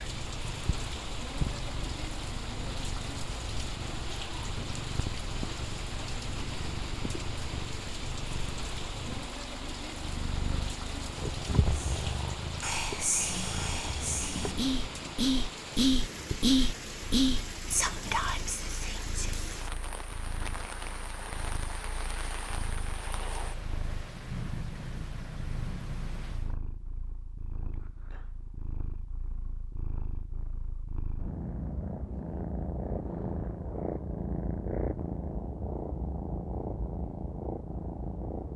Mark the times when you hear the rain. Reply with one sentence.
The rain can be heard from 0.0 to 26.6 s.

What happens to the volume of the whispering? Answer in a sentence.
The volume of the whispering goes up, then down.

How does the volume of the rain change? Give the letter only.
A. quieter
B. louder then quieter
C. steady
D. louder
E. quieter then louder
C.